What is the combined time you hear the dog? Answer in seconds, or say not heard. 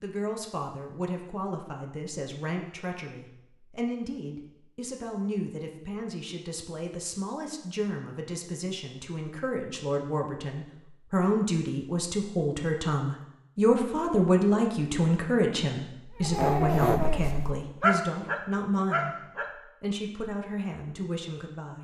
3 s.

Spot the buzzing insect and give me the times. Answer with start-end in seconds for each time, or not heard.
not heard.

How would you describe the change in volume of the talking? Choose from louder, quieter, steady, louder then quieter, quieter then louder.
louder then quieter.